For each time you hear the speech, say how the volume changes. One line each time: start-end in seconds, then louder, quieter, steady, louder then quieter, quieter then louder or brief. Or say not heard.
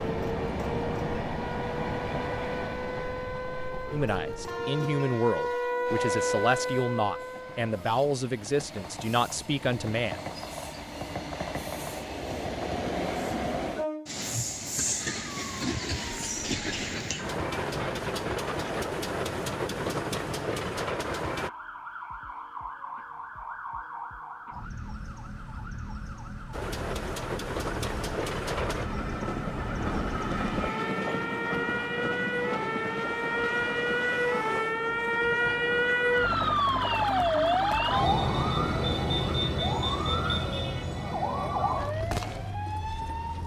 3.9-10.2 steady.